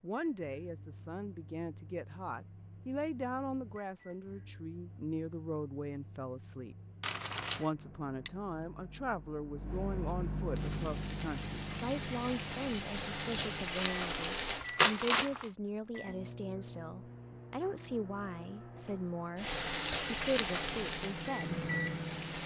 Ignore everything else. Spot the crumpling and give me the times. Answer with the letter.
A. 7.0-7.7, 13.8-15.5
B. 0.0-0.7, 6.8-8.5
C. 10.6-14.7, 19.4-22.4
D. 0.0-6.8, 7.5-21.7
A.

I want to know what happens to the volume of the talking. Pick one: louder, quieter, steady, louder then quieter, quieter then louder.
steady.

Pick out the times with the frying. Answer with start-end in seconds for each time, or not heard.
10.6-14.7, 19.4-22.4.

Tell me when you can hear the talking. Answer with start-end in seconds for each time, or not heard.
0.0-6.8, 7.5-21.7.